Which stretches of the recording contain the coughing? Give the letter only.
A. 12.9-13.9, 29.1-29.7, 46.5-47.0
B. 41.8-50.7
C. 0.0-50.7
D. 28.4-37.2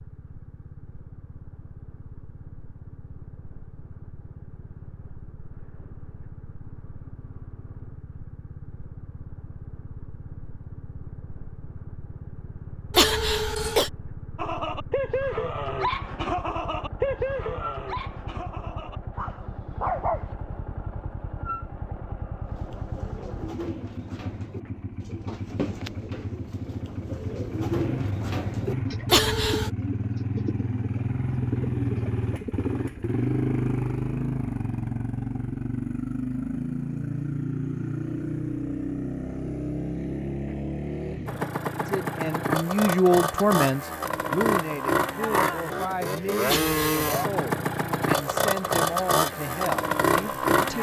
A.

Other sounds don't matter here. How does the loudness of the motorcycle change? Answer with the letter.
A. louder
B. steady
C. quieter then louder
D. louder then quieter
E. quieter
A.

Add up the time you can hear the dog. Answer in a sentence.
You can hear the dog for 6 seconds altogether.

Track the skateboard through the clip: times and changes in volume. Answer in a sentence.
The skateboard can't be heard in this clip.